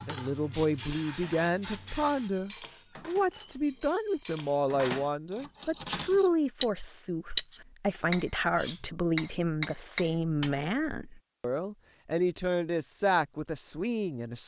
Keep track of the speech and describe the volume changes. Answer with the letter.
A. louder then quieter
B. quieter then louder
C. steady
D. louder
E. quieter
C.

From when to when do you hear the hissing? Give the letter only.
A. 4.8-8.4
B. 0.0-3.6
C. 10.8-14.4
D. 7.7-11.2
B.